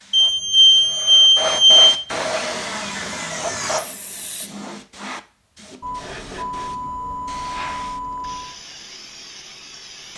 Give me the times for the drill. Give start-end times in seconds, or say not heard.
2.3-4.5.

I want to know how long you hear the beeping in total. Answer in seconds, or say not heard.
5 s.